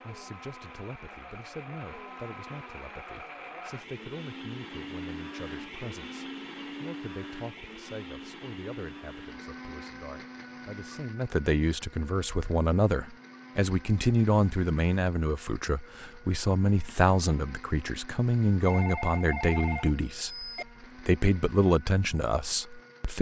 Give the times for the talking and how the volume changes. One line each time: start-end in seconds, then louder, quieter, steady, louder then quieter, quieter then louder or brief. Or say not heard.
0.0-20.4 louder
21.1-23.1 brief.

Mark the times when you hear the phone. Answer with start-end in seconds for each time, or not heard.
18.6-20.6.